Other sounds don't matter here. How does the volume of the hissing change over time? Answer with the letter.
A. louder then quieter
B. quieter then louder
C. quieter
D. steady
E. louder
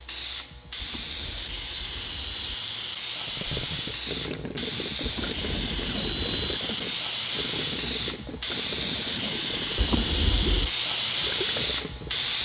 E.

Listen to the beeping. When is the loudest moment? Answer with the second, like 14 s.
6 s.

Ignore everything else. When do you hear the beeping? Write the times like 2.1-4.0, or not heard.
0.8-2.5, 5.0-6.6, 9.8-10.7.